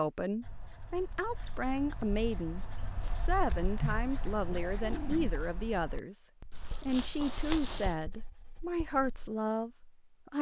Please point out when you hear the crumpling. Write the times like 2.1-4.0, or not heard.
2.9-3.3, 6.5-8.0.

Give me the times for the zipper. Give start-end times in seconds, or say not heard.
4.3-5.3.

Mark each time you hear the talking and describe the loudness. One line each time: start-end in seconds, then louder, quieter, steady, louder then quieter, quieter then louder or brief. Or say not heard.
0.0-10.3 steady.